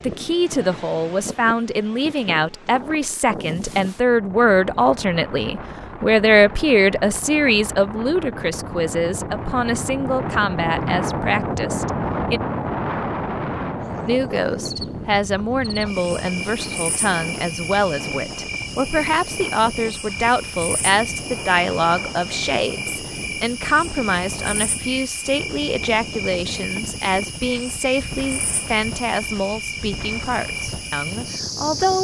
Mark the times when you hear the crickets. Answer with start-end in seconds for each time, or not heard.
13.8-31.9.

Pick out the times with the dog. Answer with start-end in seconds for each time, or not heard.
not heard.